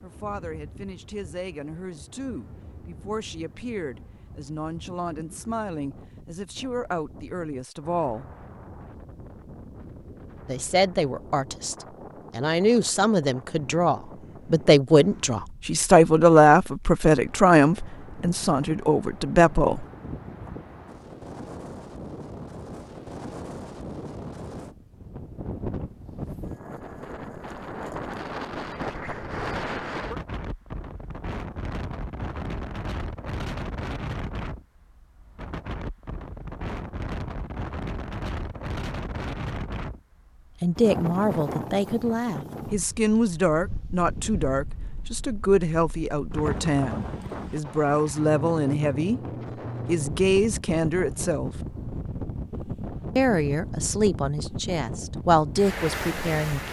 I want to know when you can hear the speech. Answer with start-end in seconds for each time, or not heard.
0.0-8.3, 10.4-19.9, 40.6-49.2, 49.9-51.5, 53.1-56.6.